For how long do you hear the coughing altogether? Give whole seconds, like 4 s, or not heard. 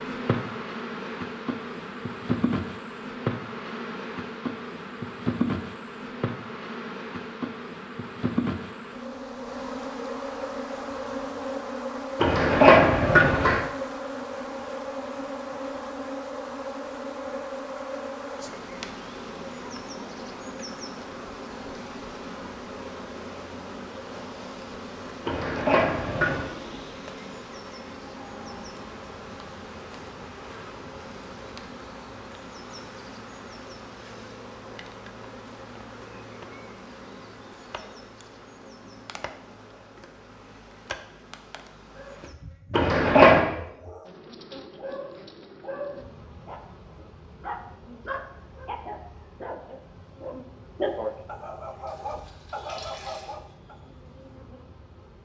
3 s.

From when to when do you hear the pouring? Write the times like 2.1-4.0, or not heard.
51.9-53.4.